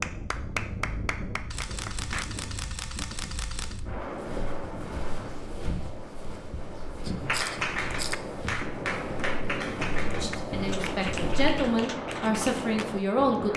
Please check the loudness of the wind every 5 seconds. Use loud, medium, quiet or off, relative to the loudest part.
medium, loud, loud.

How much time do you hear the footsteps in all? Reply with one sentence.
The footsteps can be heard for 8 seconds in total.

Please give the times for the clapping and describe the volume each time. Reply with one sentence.
The clapping can be heard briefly from 0.0 to 2.2 s; and from 7.2 to 13.5 s, getting quieter.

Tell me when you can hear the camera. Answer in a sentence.
The camera can be heard from 1.5 to 3.8 s and from 7.0 to 8.2 s.